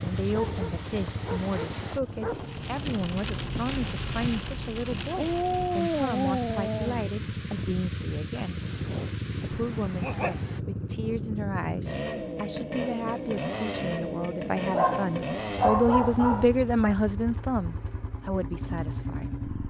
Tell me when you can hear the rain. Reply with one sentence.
You can hear the rain from 0.0 to 10.6 s.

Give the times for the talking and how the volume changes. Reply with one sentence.
You can hear the talking from 0.0 to 8.6 s, at a steady volume; and from 9.4 to 19.4 s, getting louder then quieter.